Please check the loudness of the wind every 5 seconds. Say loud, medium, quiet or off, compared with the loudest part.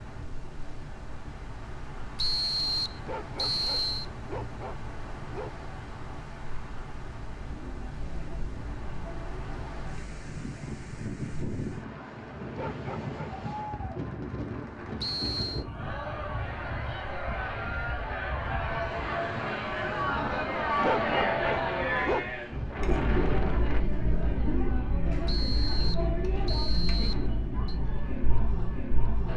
medium, medium, loud, loud, loud, off.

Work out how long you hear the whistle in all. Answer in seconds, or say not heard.
5 s.